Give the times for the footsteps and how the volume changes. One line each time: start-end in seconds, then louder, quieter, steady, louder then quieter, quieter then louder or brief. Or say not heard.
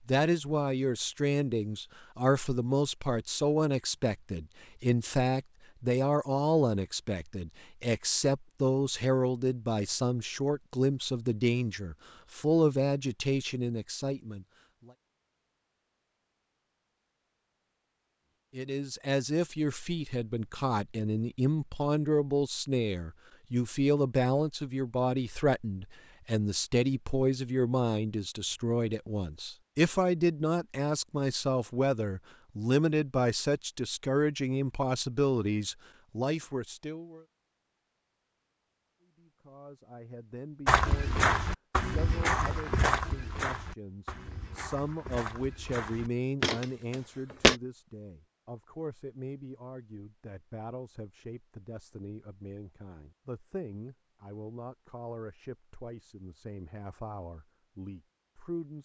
40.6-47.5 quieter then louder.